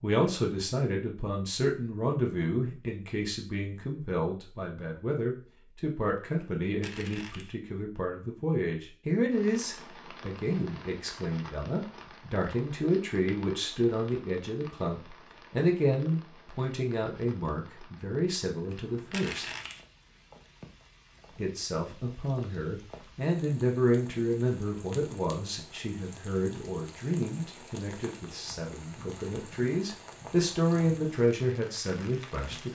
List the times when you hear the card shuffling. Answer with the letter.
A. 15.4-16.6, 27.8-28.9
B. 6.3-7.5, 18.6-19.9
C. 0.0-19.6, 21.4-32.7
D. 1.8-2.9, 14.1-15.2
B.